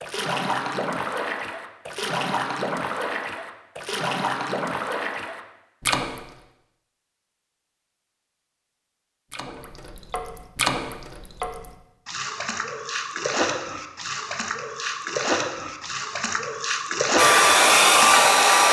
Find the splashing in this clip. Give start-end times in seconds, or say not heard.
0.0-6.3, 9.3-18.6.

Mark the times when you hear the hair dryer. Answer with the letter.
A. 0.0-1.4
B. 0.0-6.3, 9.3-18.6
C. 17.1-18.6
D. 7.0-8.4
C.